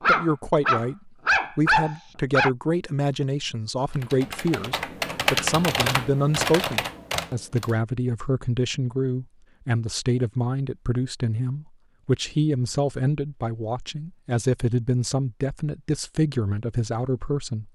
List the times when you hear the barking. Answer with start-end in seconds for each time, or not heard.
0.0-2.5.